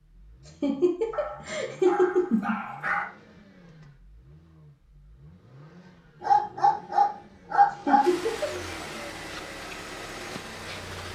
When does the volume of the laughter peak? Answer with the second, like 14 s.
2 s.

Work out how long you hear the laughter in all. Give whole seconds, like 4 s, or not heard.
3 s.